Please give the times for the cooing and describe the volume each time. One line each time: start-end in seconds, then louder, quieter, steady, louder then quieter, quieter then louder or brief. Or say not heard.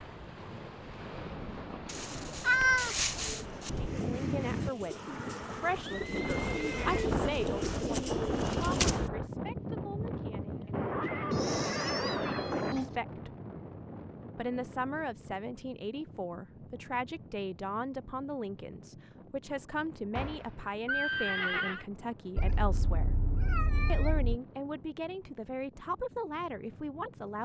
3.1-9.1 louder.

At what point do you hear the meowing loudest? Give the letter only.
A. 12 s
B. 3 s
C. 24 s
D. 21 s
B.